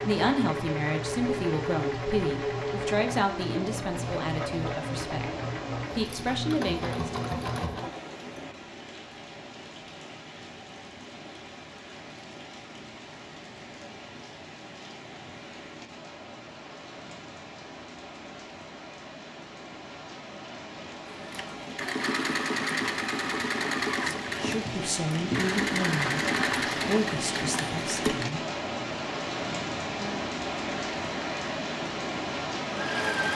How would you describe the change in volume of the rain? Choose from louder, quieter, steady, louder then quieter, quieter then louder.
louder.